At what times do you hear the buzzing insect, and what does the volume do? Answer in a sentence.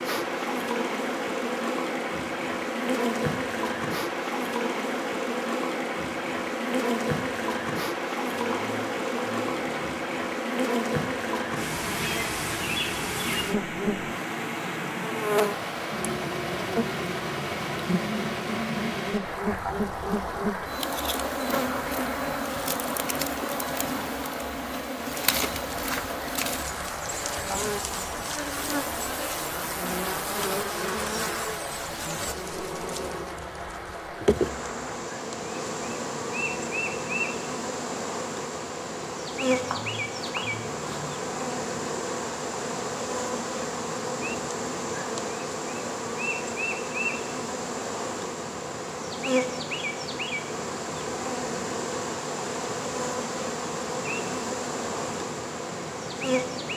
You can hear the buzzing insect from 0.0 to 56.7 s, at a steady volume.